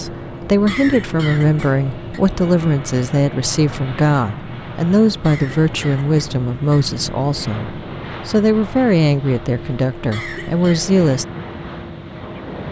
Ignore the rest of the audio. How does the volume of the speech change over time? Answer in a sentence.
The loudness of the speech stays about the same.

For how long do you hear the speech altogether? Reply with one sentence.
You can hear the speech for 11 seconds altogether.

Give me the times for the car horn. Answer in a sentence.
You can't hear the car horn here.